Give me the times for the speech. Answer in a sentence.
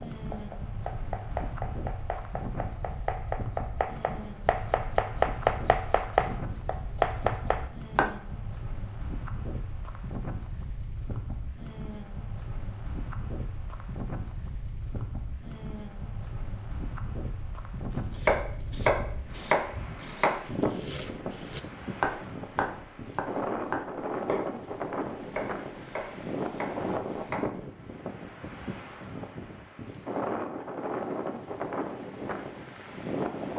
The speech can't be heard in this clip.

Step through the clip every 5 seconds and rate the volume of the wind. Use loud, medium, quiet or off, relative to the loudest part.
medium, medium, medium, medium, loud, loud, loud.